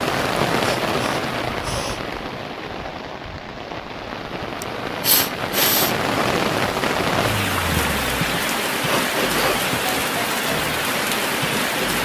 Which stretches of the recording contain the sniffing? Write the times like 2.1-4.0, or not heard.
0.6-2.0, 4.6-6.0, 8.8-9.6.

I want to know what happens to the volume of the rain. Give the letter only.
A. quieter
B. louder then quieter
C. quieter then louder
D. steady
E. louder
C.